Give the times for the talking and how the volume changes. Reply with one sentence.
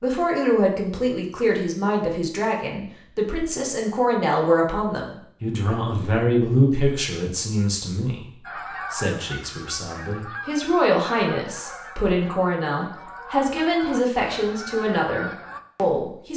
The talking can be heard from 0.0 to 16.3 s, at a steady volume.